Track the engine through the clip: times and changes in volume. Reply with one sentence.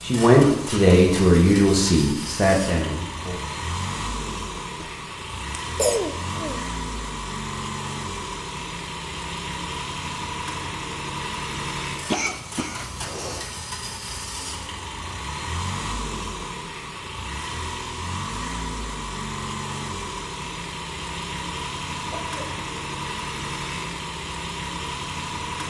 You can hear the engine from 0.0 to 25.6 s, at a steady volume.